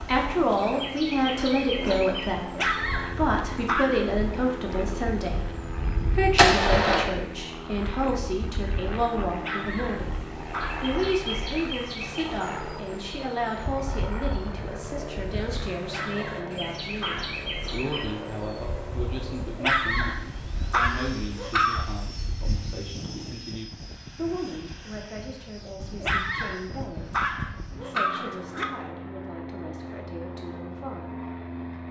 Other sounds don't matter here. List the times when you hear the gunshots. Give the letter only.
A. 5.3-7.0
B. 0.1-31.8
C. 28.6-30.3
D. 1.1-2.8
A.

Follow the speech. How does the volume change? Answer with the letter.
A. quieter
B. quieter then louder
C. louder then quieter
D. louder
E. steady
A.